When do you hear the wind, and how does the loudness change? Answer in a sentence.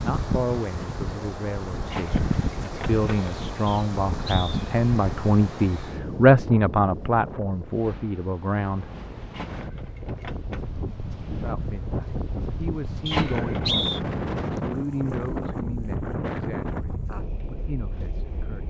The wind can be heard from 0.0 to 18.6 s, getting quieter then louder.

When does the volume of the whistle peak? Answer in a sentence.
The volume of the whistle peaks at 14 seconds.